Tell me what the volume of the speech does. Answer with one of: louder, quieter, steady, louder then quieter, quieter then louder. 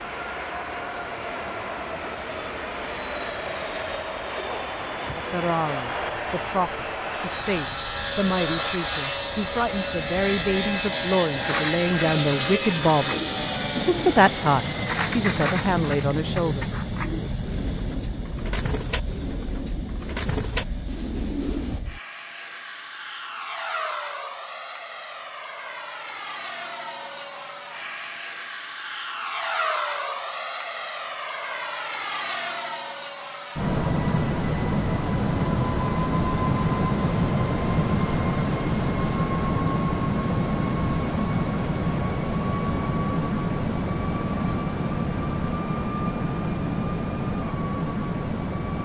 louder.